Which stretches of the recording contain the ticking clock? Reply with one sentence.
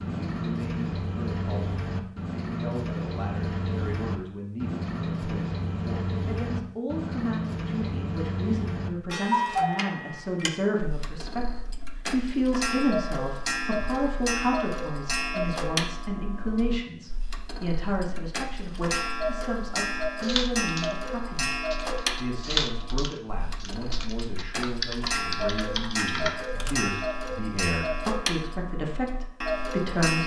The ticking clock can be heard from 0.0 to 30.2 s.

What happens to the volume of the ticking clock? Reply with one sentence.
The loudness of the ticking clock stays about the same.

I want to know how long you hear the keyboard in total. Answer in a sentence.
The keyboard can be heard for 7 seconds in total.